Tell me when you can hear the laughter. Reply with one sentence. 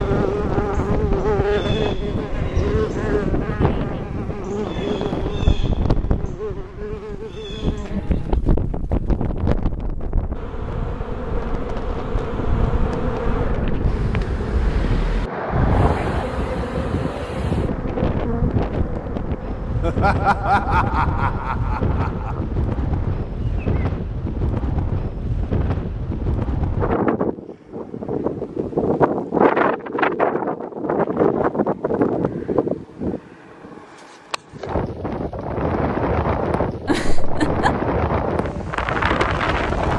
The laughter can be heard from 3.5 to 4.0 s, from 19.8 to 22.4 s and from 36.9 to 37.7 s.